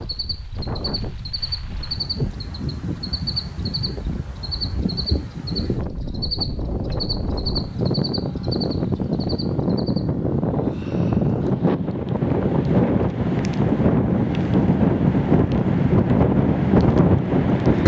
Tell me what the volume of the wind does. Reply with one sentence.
The loudness of the wind goes up.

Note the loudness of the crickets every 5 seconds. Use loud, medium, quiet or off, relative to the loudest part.
loud, loud, off, off.